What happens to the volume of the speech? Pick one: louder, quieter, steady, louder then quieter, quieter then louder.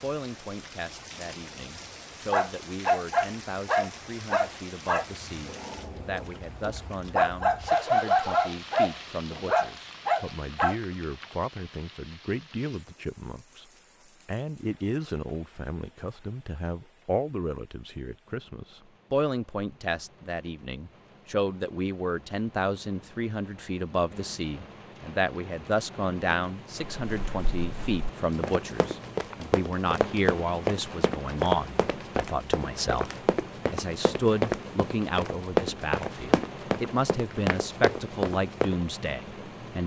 louder.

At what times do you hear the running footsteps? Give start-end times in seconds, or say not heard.
27.0-38.8.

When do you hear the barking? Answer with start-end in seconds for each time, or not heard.
2.3-10.8.